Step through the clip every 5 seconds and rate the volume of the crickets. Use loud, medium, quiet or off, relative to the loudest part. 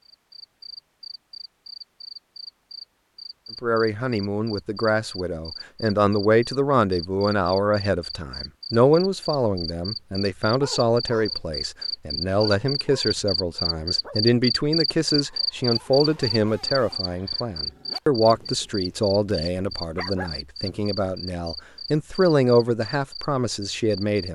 quiet, medium, loud, loud, medium.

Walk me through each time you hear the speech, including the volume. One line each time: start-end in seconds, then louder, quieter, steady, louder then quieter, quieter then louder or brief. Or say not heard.
3.6-24.3 steady.